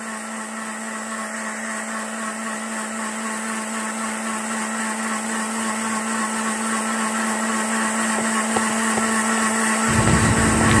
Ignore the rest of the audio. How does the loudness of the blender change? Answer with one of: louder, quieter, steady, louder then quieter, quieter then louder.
louder.